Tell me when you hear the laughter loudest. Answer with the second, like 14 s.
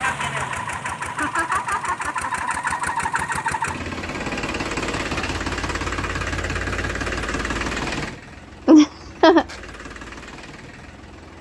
9 s.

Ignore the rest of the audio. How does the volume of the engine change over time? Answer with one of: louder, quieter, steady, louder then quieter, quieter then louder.
quieter.